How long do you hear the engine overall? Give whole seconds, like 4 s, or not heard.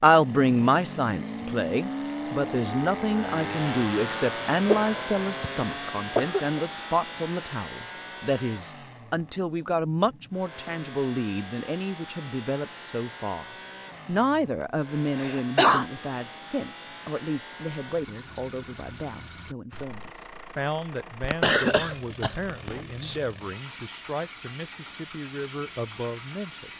27 s.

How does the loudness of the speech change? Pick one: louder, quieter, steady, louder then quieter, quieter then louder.
quieter.